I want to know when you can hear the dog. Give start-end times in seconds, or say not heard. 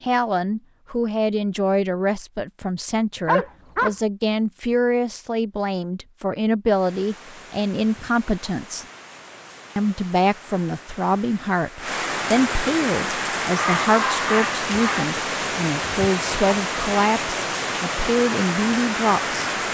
3.2-4.0, 13.6-15.1.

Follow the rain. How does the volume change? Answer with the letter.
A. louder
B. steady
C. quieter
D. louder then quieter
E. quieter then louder
A.